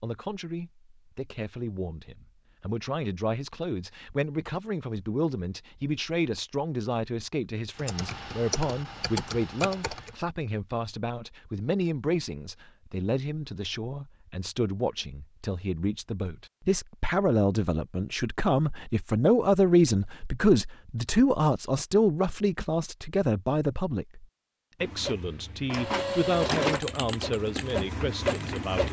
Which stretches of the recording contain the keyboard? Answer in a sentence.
The keyboard can be heard from 7.8 to 10.2 s and from 26.6 to 28.7 s.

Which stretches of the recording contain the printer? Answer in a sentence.
You can hear the printer from 24.8 to 28.8 s.